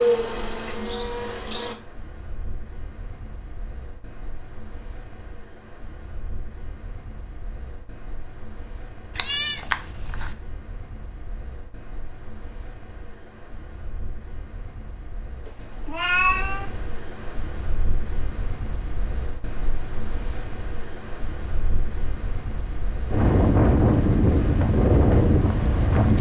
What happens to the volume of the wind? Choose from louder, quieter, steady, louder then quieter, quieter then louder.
louder.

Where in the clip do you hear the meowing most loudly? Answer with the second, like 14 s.
16 s.